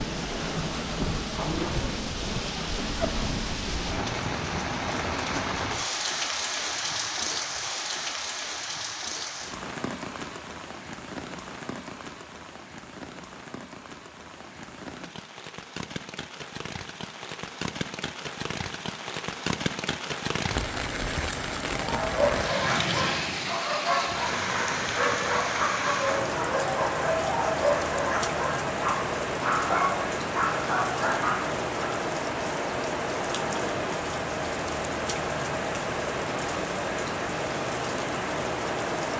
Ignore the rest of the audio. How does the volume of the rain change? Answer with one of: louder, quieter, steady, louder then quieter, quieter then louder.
quieter then louder.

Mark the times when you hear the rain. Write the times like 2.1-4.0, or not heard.
0.0-39.1.